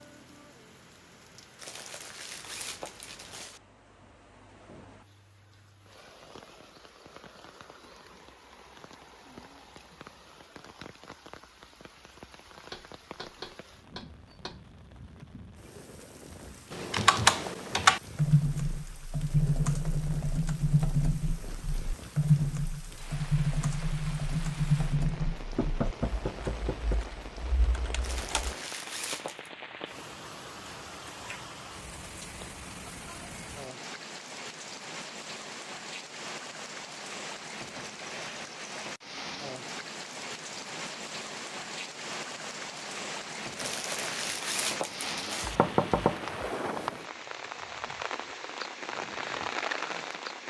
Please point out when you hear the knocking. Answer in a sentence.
You can hear the knocking from 12.7 to 14.6 s, from 25.6 to 27.0 s and from 45.4 to 46.5 s.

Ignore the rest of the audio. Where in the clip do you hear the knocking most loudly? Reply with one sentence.
The volume of the knocking peaks at 46 seconds.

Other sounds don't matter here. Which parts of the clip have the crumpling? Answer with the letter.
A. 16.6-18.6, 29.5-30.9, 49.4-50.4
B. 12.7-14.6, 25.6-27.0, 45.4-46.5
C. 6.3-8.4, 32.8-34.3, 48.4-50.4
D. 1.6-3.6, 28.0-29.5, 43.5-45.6
D.